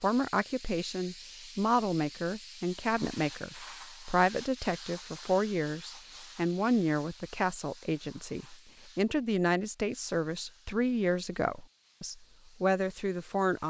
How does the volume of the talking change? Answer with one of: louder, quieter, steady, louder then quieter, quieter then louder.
steady.